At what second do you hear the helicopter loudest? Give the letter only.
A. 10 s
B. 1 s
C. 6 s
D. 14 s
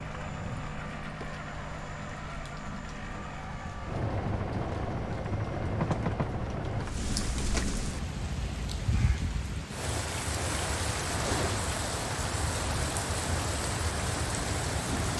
C.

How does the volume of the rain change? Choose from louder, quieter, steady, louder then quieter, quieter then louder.
louder.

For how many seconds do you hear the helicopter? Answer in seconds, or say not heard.
9 s.